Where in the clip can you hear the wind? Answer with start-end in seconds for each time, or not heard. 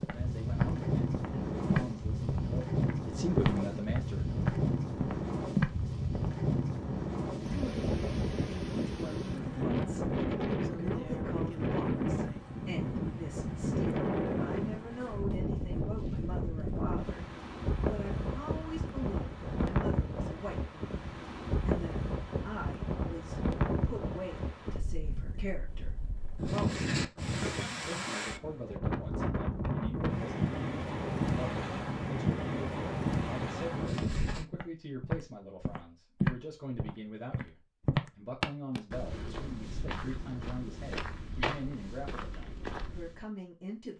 0.0-34.5.